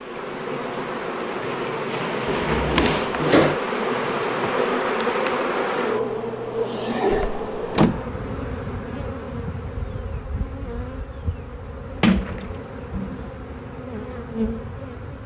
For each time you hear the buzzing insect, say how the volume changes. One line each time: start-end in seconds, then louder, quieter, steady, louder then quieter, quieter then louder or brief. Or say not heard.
0.0-15.2 quieter.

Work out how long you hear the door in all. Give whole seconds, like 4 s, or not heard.
3 s.